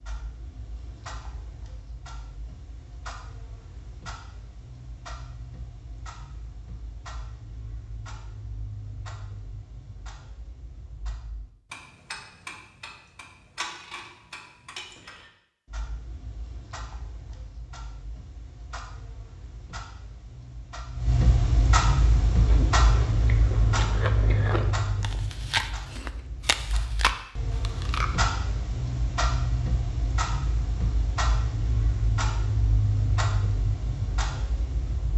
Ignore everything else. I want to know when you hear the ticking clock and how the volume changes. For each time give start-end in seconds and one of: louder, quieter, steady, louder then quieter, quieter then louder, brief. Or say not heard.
0.0-35.1 louder.